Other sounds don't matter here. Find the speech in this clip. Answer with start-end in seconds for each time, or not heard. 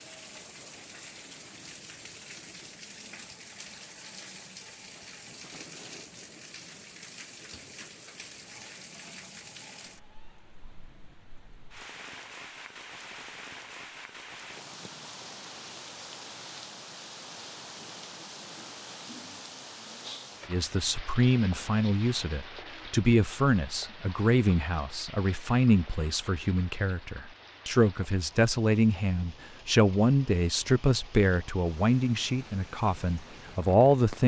20.5-34.2.